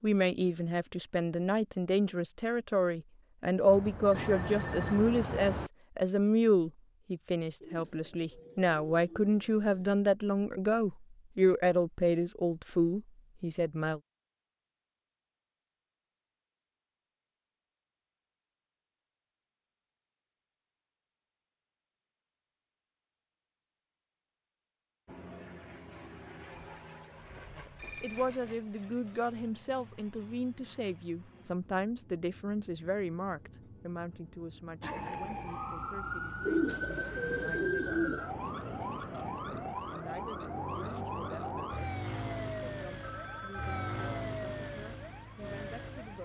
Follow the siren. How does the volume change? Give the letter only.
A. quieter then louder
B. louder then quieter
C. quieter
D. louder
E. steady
E.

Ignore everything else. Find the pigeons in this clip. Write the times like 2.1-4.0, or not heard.
7.6-9.9, 36.5-38.2.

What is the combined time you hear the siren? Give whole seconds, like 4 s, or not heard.
11 s.